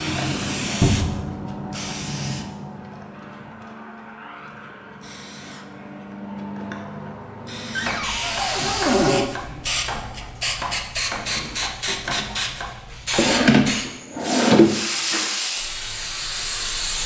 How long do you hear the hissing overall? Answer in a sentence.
The hissing can be heard for 17 seconds in total.